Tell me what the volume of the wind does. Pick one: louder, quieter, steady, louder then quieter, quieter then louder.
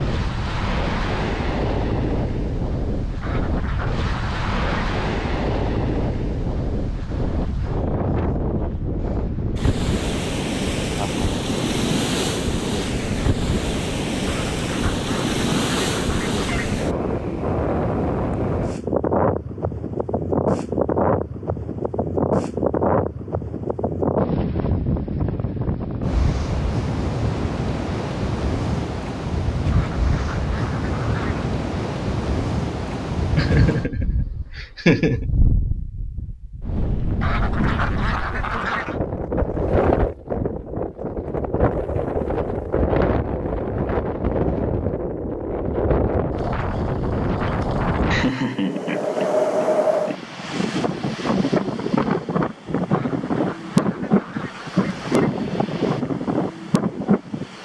steady.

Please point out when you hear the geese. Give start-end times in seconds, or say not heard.
3.2-4.6, 14.2-16.8, 29.7-31.6, 37.2-39.0, 52.9-55.3.